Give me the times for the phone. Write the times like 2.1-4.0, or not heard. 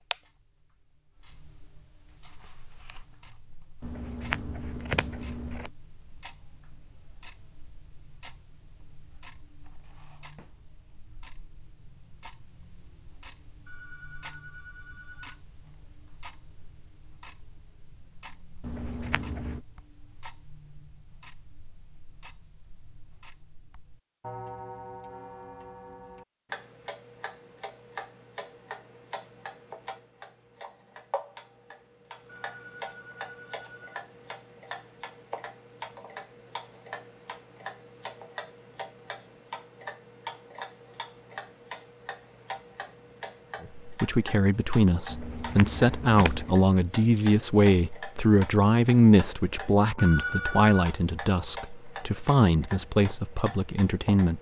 13.7-15.4, 32.4-33.9, 50.0-50.9.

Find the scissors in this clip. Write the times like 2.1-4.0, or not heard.
3.8-5.7, 18.6-19.6, 45.0-46.5.